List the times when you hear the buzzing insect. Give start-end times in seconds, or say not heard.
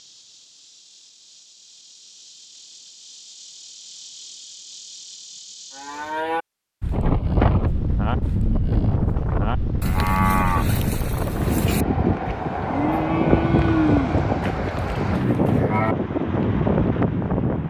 0.0-6.2.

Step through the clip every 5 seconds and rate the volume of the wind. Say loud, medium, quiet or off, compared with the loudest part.
off, loud, loud, loud.